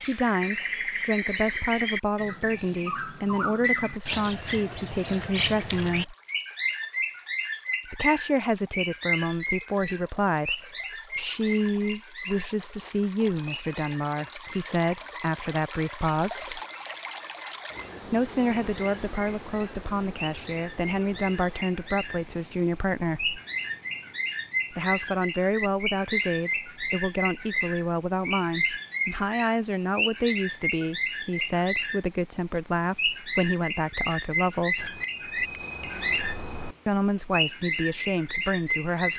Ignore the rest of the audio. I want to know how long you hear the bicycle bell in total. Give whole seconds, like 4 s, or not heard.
3 s.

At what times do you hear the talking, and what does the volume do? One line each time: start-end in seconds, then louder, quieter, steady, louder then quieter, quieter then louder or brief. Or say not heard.
0.1-6.2 steady
7.8-16.6 steady
18.1-23.4 steady
24.7-34.9 steady
36.9-39.1 brief.